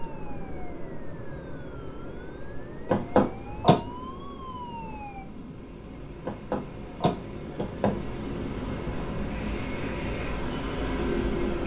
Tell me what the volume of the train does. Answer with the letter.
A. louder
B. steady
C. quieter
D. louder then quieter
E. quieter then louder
A.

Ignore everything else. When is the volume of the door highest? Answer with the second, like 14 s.
3 s.